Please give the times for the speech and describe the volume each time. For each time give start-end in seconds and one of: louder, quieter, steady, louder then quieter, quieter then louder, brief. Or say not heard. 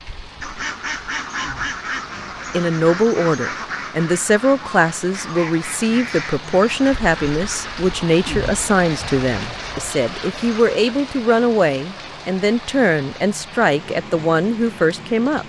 2.5-15.4 steady.